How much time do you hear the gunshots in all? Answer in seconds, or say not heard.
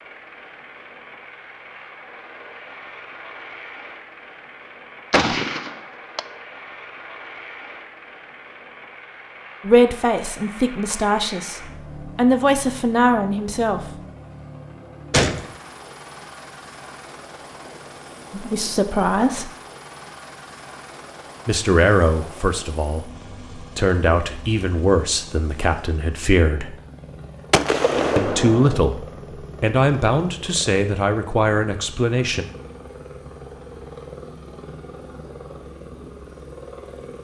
3 s.